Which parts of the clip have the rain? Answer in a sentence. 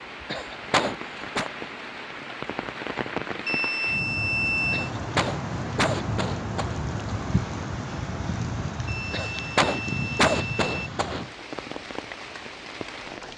The rain can be heard from 0.0 to 13.3 s.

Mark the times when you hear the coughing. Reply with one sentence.
You can hear the coughing from 0.3 to 1.4 s, from 4.7 to 6.8 s and from 9.1 to 11.2 s.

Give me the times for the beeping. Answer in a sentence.
The beeping can be heard from 3.5 to 4.9 s and from 8.8 to 10.9 s.